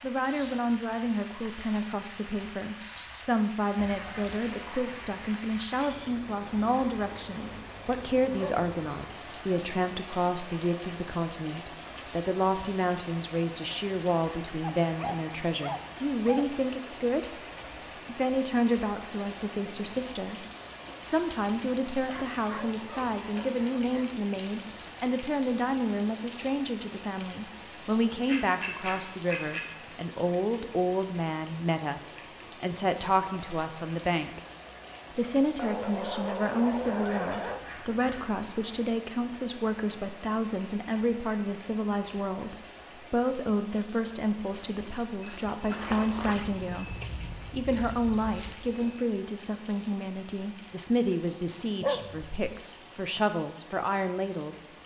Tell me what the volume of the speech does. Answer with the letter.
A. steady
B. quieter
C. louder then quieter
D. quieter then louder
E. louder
A.